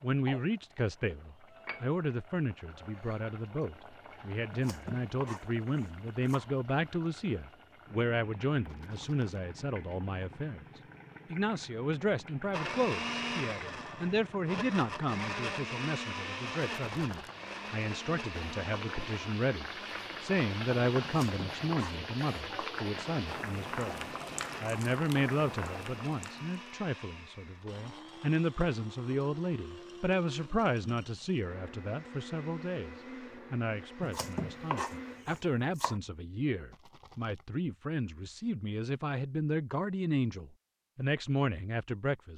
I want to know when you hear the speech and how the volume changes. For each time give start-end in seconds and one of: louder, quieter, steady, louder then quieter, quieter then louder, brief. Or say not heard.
0.0-42.3 steady.